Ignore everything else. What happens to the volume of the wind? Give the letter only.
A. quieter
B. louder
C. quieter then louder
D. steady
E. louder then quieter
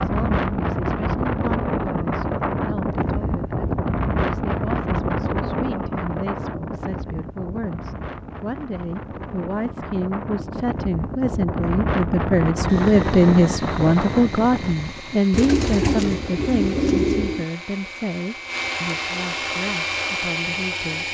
C.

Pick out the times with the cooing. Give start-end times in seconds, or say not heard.
15.3-17.4.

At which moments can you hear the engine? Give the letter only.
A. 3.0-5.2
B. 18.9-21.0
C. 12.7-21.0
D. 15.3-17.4
C.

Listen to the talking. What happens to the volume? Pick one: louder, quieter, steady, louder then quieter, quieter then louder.
louder then quieter.